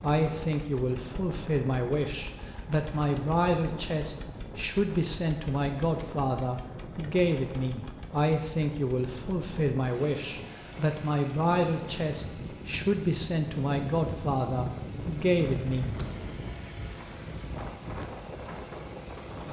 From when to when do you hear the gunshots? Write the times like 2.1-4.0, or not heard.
not heard.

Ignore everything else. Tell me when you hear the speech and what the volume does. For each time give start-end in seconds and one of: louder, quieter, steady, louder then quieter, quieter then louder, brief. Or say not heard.
0.0-15.9 steady.